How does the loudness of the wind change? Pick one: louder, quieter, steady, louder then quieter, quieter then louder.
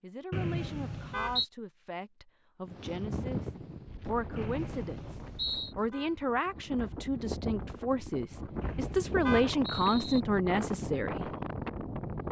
quieter then louder.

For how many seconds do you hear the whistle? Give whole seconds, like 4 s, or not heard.
4 s.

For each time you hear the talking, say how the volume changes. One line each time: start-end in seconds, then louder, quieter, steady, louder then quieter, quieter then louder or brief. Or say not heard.
0.0-11.3 louder.